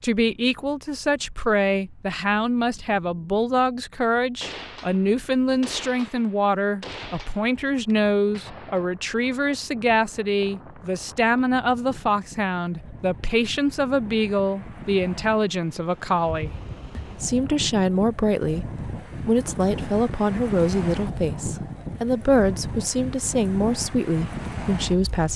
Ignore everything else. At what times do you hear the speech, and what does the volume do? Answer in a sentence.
The speech can be heard from 0.0 to 25.3 s, at a steady volume.